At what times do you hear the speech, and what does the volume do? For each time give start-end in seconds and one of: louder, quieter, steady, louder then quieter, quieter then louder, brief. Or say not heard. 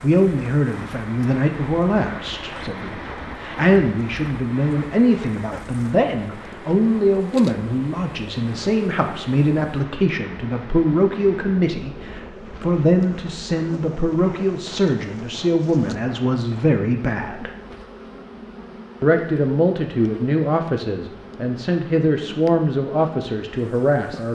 0.0-17.5 steady
19.0-24.3 steady.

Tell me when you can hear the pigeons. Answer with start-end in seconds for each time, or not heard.
not heard.